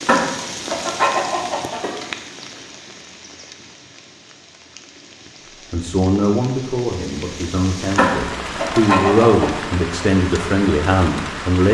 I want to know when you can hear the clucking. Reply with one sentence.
You can hear the clucking from 0.1 to 2.0 s and from 8.0 to 9.5 s.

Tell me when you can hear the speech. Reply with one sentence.
You can hear the speech from 5.7 to 11.6 s.